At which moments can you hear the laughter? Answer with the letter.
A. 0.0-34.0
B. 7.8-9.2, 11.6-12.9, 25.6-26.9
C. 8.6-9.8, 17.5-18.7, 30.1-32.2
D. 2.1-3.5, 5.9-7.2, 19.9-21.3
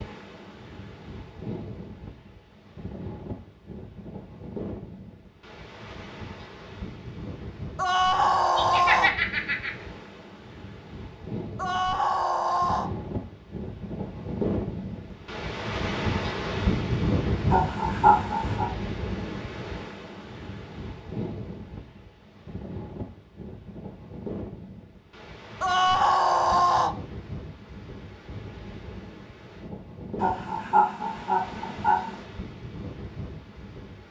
C.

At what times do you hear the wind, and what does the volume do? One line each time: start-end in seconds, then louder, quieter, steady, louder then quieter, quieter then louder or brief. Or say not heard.
0.0-34.0 louder then quieter.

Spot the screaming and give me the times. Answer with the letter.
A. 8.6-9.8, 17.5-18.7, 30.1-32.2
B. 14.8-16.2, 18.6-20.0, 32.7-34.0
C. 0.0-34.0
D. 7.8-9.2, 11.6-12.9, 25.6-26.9
D.